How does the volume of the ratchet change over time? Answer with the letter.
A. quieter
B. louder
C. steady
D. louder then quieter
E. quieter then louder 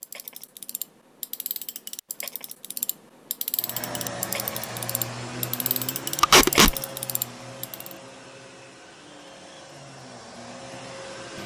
B.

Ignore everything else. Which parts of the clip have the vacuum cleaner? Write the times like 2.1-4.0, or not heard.
3.5-11.4.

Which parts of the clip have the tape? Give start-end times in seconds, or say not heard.
6.2-6.8.